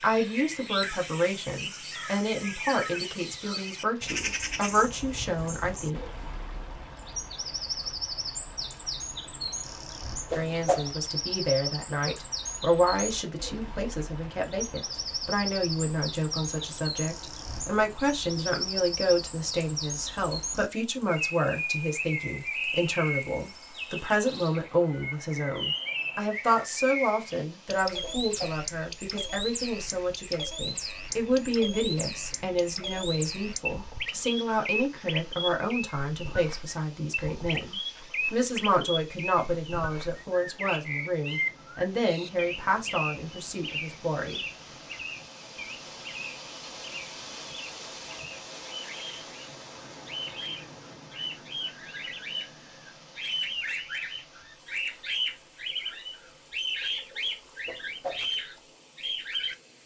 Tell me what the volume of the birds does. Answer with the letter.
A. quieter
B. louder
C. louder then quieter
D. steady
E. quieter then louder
D.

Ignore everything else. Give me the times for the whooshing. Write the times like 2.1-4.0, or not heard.
10.3-10.9, 28.0-28.6, 57.6-58.2.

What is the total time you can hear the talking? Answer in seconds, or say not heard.
40 s.